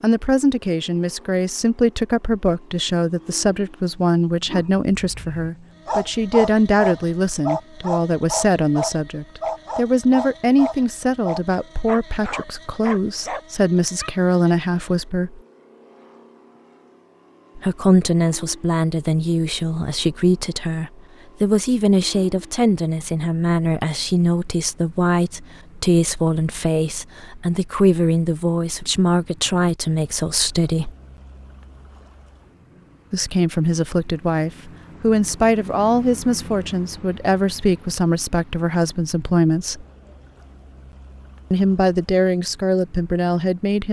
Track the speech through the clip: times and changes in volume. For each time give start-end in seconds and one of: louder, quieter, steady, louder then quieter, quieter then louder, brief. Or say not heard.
0.0-15.4 steady
17.6-30.9 steady
33.1-39.9 steady
41.5-43.8 brief.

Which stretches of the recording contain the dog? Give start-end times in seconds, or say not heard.
4.5-14.2.